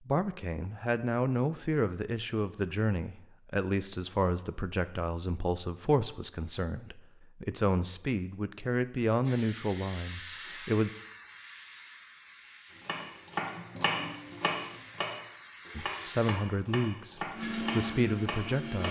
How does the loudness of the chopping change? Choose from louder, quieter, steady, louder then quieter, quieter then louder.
quieter.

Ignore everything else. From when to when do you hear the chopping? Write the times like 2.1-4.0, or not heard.
12.7-18.8.